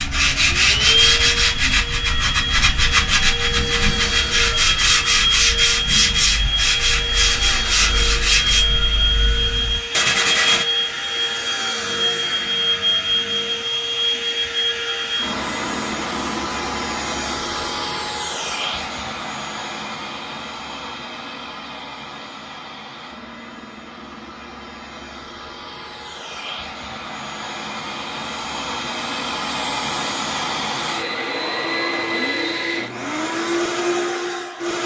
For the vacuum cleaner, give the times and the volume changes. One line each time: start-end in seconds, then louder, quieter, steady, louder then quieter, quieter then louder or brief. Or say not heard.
0.0-34.8 quieter then louder.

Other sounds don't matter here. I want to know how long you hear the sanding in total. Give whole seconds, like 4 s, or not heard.
11 s.